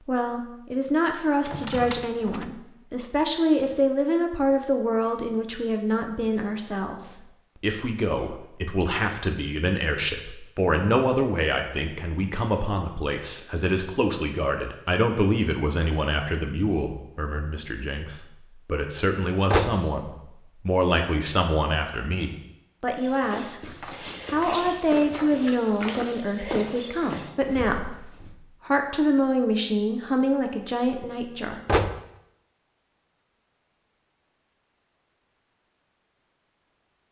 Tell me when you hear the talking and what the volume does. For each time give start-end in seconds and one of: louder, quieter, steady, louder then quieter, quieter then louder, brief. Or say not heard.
0.1-31.6 steady.